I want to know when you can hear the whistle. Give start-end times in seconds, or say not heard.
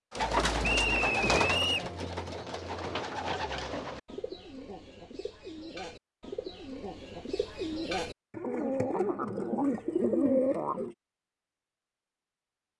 0.6-1.9.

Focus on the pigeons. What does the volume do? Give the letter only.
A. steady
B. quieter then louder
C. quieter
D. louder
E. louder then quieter
B.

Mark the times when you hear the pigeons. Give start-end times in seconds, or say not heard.
0.1-10.9.